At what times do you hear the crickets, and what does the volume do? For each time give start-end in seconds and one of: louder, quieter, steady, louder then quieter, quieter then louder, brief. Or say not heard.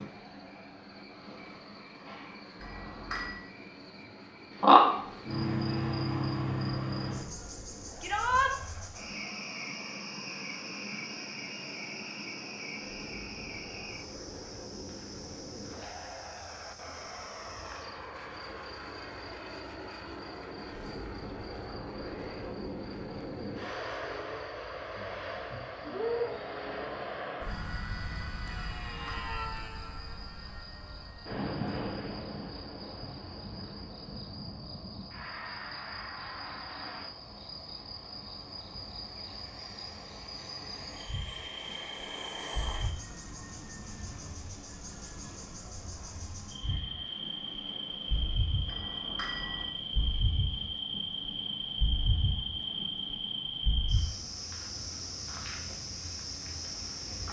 0.0-57.2 quieter then louder.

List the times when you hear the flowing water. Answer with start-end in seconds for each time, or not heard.
not heard.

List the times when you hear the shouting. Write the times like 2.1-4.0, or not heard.
8.0-8.6.